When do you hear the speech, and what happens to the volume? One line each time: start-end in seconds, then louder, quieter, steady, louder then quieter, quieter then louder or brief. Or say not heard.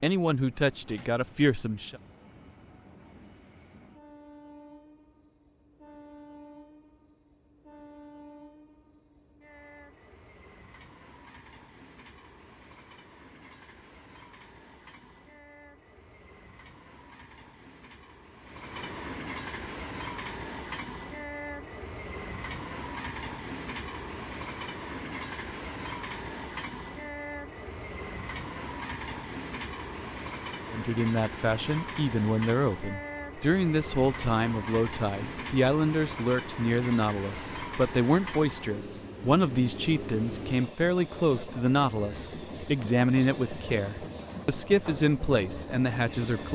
0.0-2.0 brief
30.7-46.4 steady.